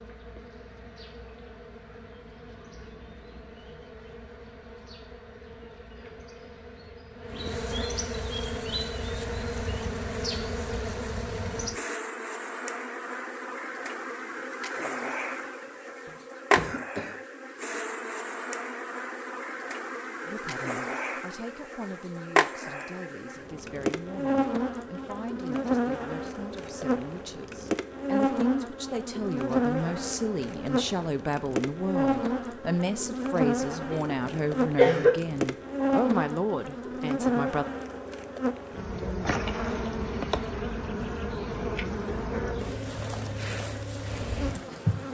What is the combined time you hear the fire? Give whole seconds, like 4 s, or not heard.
not heard.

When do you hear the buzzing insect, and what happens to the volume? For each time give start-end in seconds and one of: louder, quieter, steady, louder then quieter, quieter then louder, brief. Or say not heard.
0.0-45.0 louder.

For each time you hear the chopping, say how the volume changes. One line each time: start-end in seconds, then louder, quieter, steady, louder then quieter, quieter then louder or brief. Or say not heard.
not heard.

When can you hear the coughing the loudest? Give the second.
35 s.